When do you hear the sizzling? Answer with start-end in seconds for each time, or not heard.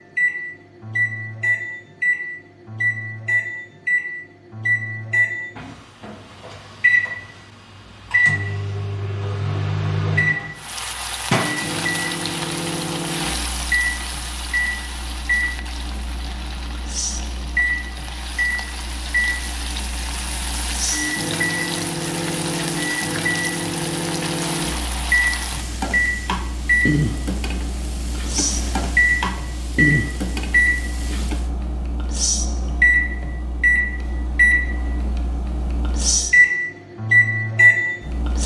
10.6-31.5.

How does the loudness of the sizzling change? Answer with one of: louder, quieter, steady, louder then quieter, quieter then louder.
quieter then louder.